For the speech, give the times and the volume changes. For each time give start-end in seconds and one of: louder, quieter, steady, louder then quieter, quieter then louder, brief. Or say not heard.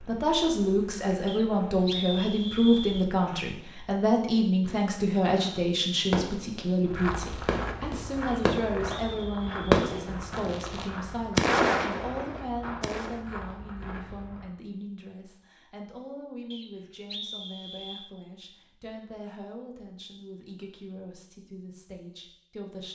0.0-22.9 quieter.